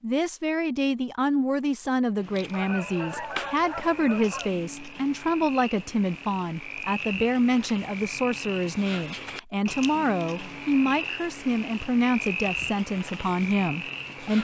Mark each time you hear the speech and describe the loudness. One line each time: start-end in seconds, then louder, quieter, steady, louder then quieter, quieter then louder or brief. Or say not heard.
0.0-14.3 steady.